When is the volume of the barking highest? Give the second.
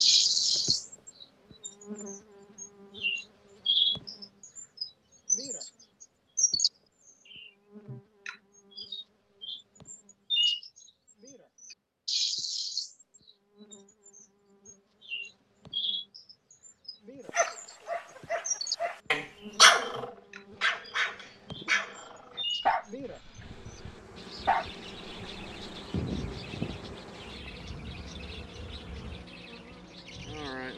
20 s.